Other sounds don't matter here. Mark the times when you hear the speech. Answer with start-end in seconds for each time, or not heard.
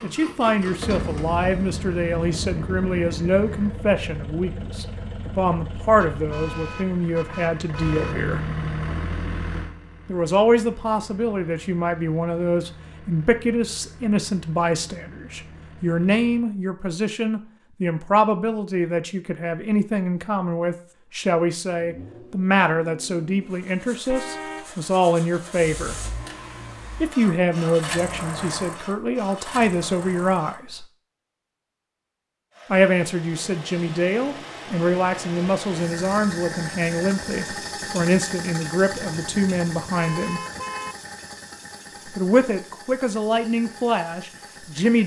0.0-8.4, 10.1-25.9, 27.0-30.9, 32.7-40.4, 42.0-45.0.